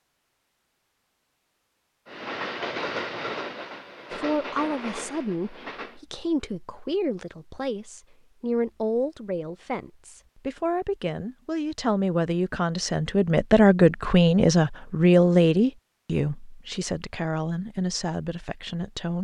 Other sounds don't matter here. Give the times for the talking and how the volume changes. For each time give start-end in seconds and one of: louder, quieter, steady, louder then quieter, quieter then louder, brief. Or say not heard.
4.1-19.1 louder then quieter.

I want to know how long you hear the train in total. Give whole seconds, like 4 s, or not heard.
4 s.